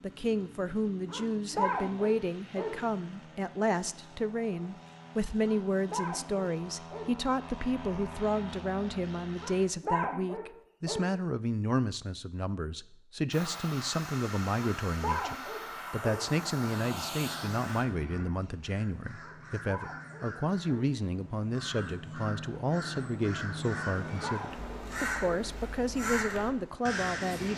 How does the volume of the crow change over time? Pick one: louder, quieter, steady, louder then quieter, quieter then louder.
louder.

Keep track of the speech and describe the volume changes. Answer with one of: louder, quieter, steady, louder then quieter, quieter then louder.
steady.